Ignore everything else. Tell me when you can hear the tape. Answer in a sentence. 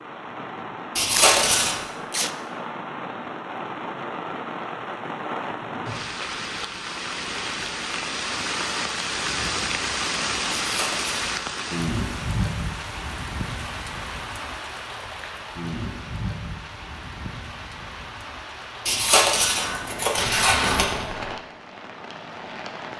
The tape can be heard from 1.1 to 2.3 s and from 20.1 to 21.4 s.